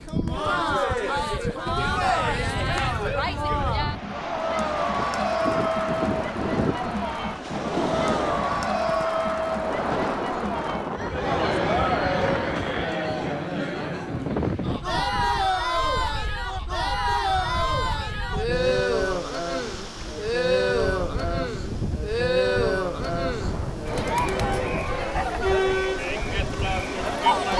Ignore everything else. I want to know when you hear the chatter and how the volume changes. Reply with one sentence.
You can hear the chatter from 0.1 to 27.5 s, at a steady volume.